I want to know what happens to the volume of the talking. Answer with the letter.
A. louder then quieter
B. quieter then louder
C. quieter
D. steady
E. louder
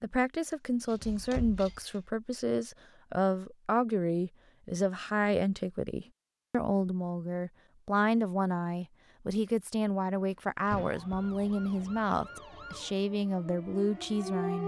D.